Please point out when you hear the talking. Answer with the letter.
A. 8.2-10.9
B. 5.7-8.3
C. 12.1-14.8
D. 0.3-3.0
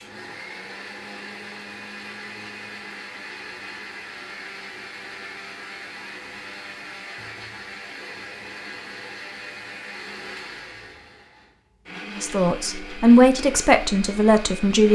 C.